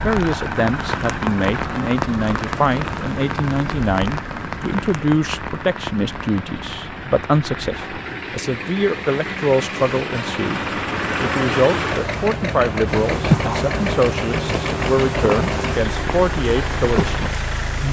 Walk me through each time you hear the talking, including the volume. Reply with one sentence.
You can hear the talking from 0.0 to 17.8 s, at a steady volume.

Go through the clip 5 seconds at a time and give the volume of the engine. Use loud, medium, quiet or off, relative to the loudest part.
medium, medium, loud, loud.